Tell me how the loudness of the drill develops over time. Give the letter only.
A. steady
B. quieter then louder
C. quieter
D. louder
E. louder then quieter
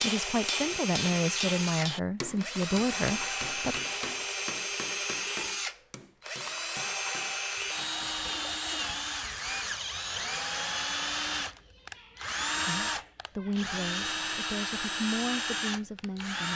A.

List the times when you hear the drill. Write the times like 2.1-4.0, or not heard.
0.0-16.5.